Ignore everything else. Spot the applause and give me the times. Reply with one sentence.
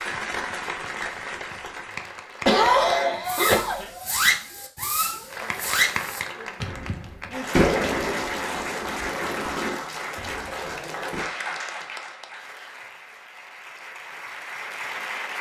The applause can be heard from 0.0 to 2.9 s and from 5.3 to 15.3 s.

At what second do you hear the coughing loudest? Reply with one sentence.
The loudest moment of the coughing is at 3 seconds.